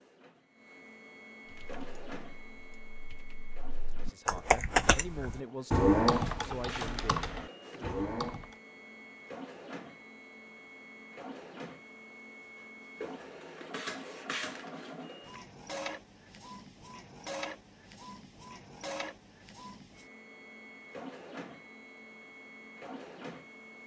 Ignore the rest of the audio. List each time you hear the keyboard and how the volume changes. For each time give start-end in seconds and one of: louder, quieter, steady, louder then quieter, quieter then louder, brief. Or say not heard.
1.4-8.6 louder then quieter.